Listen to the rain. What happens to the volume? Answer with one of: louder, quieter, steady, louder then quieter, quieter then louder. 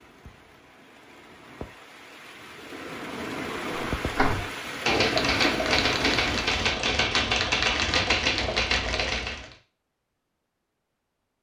louder.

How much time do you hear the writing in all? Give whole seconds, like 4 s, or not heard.
not heard.